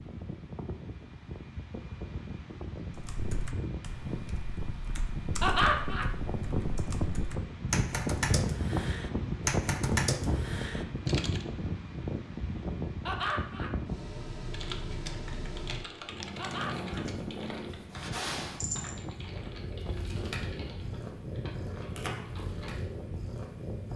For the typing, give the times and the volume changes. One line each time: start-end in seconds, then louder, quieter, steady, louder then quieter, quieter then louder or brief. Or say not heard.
2.9-11.4 louder
14.5-22.9 quieter.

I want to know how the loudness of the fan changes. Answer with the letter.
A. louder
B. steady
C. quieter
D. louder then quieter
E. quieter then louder
D.